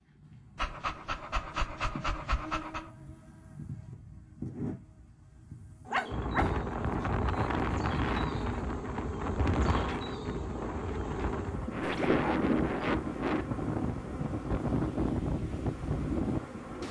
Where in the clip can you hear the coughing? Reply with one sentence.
You can't hear the coughing here.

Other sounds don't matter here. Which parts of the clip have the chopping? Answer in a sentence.
You can't hear the chopping here.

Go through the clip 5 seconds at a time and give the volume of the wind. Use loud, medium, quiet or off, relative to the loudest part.
off, loud, loud, loud.